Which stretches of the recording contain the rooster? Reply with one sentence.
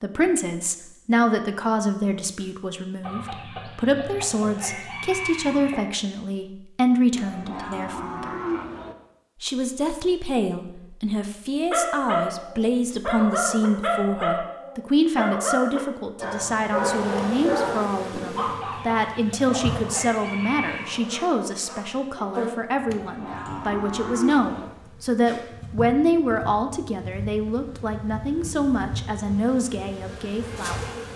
You can hear the rooster from 3.0 to 5.9 s and from 18.4 to 20.9 s.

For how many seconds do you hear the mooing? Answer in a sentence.
You can hear the mooing for 4 seconds altogether.